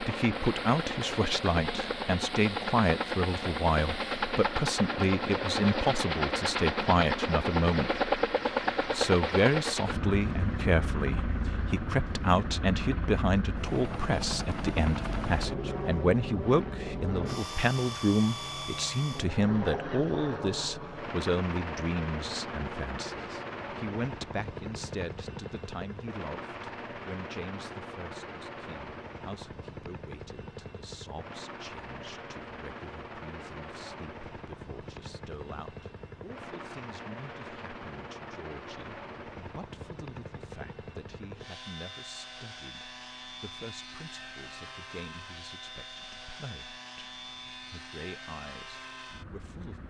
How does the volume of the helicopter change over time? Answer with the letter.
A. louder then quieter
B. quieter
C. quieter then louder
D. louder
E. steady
B.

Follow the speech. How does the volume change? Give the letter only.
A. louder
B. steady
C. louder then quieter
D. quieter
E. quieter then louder
D.